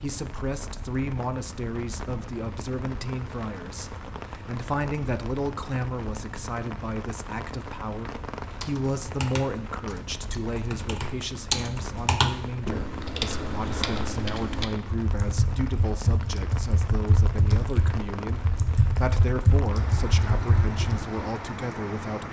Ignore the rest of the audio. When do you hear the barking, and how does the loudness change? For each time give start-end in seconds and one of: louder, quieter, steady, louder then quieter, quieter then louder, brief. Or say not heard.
not heard.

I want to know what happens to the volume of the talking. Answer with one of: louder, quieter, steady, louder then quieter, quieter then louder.
steady.